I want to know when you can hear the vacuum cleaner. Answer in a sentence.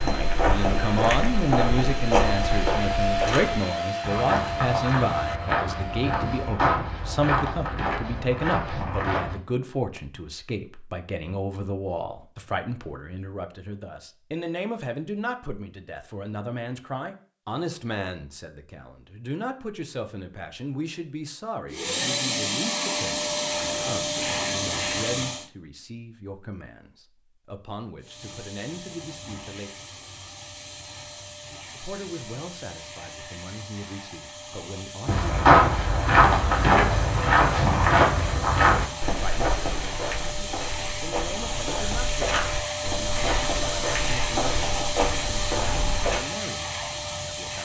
The vacuum cleaner can be heard from 0.0 to 6.6 s, from 21.6 to 25.5 s and from 28.0 to 47.6 s.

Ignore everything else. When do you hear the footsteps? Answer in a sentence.
The footsteps can be heard from 0.0 to 9.3 s and from 35.0 to 46.2 s.